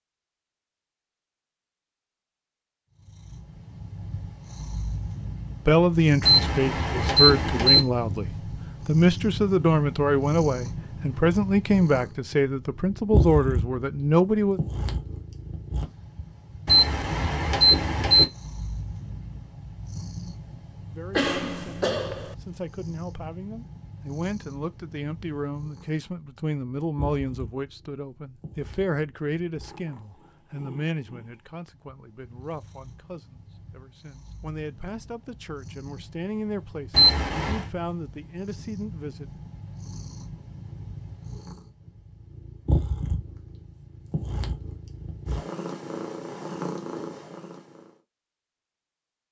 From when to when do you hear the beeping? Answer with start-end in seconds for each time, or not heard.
6.2-7.8, 16.6-18.2, 36.9-37.6.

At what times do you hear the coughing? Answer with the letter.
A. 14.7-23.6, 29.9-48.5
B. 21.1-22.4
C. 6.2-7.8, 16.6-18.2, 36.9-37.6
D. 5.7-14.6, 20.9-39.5
B.